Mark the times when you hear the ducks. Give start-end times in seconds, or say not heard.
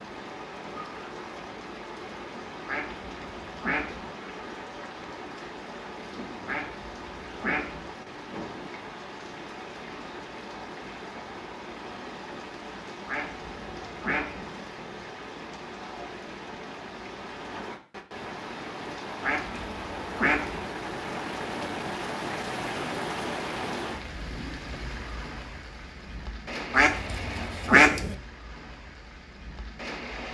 2.6-4.1, 6.5-7.9, 13.1-14.5, 19.2-20.6, 26.7-28.1.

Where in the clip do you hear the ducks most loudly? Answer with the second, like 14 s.
28 s.